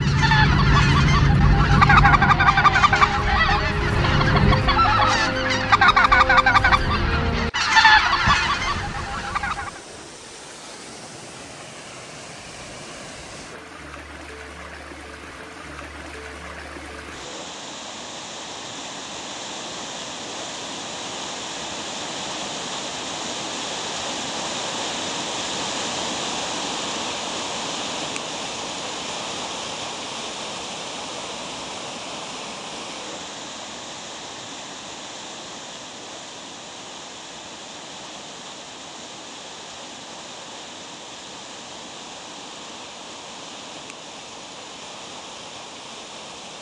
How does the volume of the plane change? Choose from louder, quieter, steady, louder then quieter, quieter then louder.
quieter then louder.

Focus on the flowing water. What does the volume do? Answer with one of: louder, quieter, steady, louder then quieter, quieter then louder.
louder then quieter.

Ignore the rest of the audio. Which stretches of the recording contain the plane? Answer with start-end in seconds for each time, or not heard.
0.0-4.8.